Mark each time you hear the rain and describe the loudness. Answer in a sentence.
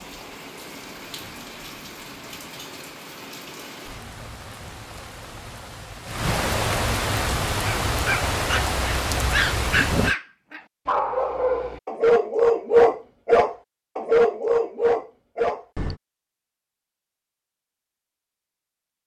You can hear the rain from 0.0 to 10.2 s, getting louder.